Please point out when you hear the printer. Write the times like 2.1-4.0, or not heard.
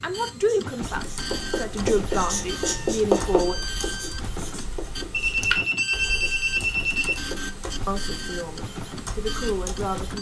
0.0-10.1.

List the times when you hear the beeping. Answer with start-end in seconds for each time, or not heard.
1.9-3.5, 5.1-7.2.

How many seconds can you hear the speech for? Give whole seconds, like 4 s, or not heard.
6 s.